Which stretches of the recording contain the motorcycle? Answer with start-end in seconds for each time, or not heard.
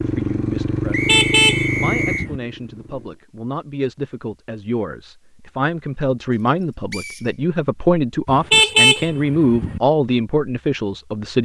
0.0-3.2.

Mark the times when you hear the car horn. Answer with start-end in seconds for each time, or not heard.
0.9-2.4, 8.2-9.8.